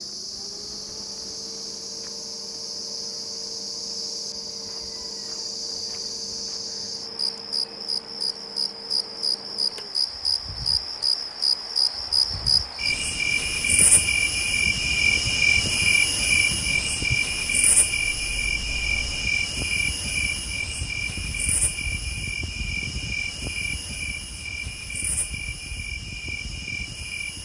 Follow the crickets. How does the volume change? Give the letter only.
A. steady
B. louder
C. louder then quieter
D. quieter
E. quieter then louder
C.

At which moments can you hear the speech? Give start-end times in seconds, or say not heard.
not heard.